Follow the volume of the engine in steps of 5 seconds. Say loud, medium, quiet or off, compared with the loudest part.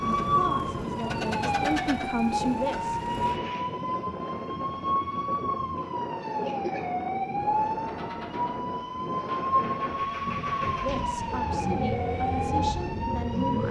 loud, medium, loud.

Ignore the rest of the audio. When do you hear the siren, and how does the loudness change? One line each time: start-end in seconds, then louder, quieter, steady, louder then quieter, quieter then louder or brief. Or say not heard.
0.0-13.6 steady.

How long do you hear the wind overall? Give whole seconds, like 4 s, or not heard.
13 s.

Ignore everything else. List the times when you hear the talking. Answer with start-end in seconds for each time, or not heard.
0.2-3.0, 10.8-13.6.